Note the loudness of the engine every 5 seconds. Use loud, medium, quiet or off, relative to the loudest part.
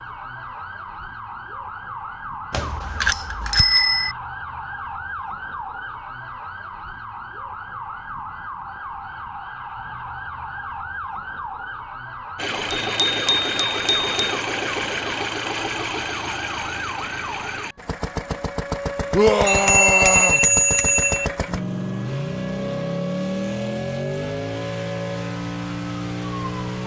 off, off, loud, loud, loud, loud.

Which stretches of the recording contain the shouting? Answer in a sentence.
The shouting can be heard from 19.1 to 20.4 s.